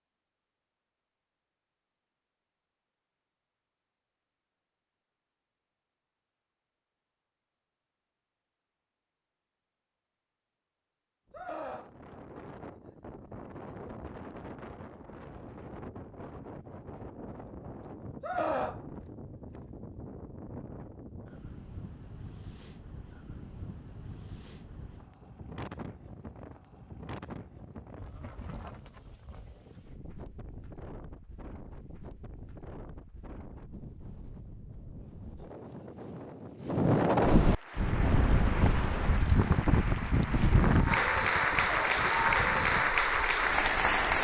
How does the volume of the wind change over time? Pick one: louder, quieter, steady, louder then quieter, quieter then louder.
louder.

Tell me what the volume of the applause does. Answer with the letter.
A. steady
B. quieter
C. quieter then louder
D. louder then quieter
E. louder
E.